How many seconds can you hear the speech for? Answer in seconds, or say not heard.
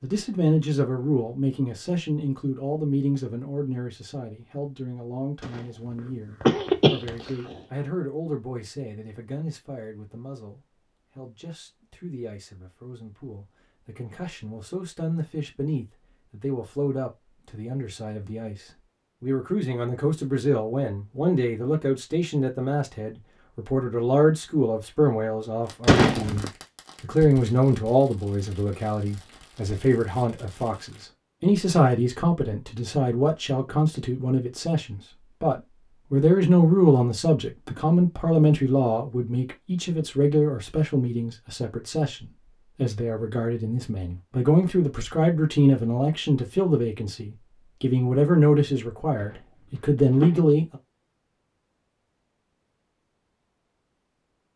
51 s.